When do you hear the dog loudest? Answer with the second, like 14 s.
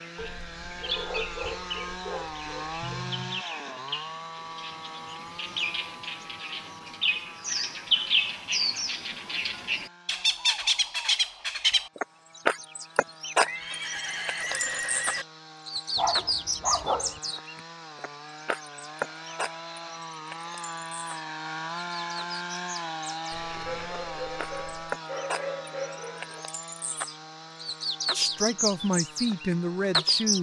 17 s.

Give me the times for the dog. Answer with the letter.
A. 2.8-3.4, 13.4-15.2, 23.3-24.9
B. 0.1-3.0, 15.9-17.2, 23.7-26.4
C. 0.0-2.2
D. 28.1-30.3
B.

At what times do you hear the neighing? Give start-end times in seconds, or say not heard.
2.8-3.4, 13.4-15.2, 23.3-24.9.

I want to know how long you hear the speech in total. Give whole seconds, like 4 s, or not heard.
2 s.